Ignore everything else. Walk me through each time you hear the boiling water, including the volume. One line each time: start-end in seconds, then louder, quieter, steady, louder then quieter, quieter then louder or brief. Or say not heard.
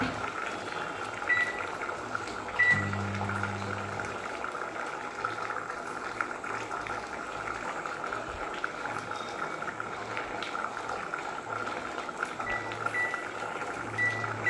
0.0-14.4 steady.